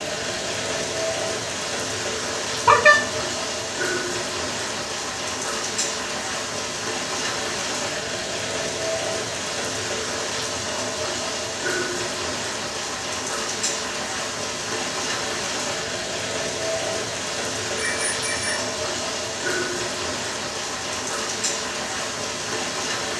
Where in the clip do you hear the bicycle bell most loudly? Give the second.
3 s.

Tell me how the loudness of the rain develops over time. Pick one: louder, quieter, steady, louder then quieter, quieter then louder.
steady.